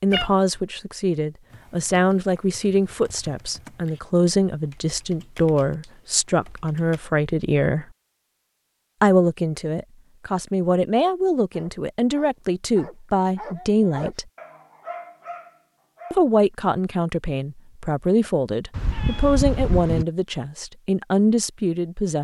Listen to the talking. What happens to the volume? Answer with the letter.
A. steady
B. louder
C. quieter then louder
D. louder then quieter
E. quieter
A.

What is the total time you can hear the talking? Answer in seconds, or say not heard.
19 s.